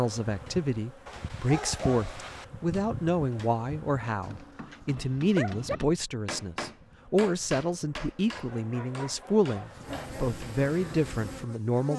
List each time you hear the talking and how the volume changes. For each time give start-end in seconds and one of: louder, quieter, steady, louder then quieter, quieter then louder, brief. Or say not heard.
0.0-11.9 steady.